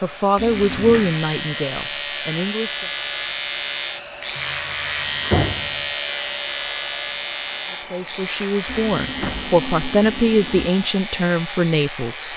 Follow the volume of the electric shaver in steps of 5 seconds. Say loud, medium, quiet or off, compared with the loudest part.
loud, loud, medium.